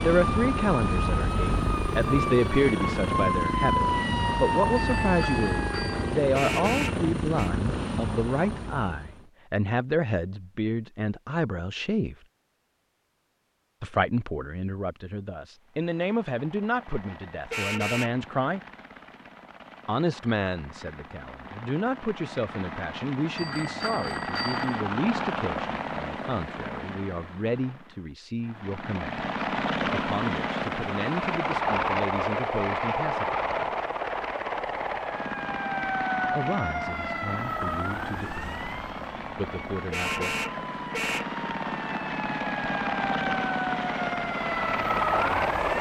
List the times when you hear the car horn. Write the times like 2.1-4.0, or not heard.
6.3-7.5, 17.5-18.1, 39.9-41.2.